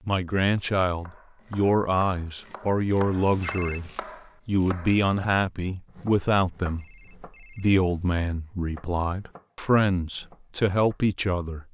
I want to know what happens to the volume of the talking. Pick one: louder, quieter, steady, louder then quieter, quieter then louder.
steady.